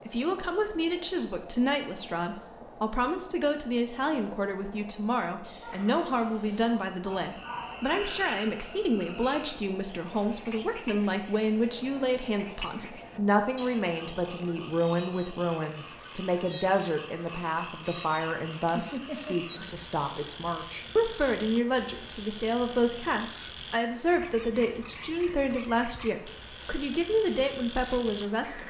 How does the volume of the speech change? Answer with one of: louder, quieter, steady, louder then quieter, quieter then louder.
steady.